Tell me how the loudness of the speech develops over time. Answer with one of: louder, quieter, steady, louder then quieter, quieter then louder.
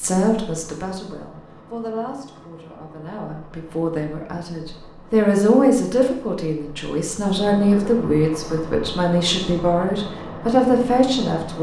louder.